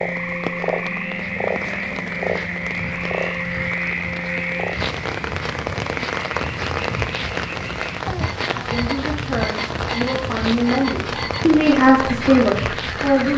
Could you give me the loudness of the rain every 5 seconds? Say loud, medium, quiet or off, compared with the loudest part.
medium, loud, loud.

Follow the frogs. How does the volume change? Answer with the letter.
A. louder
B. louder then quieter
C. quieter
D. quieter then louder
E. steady
C.